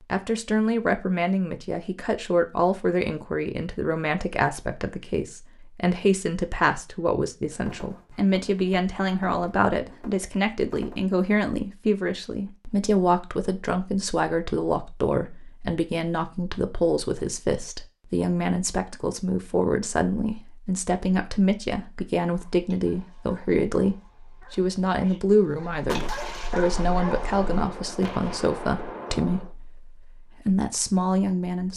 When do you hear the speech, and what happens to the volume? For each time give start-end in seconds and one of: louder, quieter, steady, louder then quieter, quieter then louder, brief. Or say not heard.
0.1-31.7 steady.